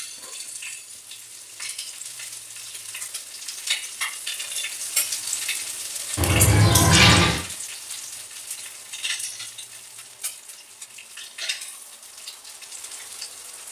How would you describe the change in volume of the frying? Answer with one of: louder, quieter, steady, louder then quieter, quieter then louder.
louder then quieter.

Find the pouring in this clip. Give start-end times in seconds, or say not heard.
6.2-7.4.